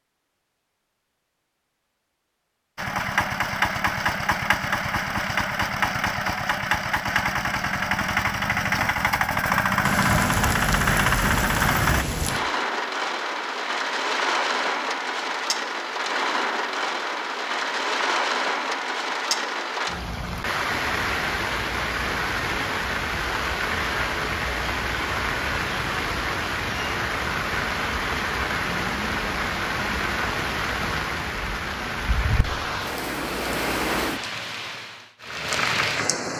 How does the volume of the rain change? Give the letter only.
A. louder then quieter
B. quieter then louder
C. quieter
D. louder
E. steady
E.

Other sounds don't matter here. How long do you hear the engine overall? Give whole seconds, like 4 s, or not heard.
9 s.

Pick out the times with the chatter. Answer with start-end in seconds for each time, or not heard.
not heard.